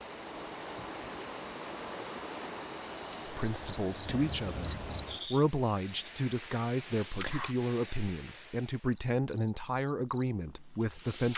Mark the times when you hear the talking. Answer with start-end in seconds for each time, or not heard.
3.2-11.3.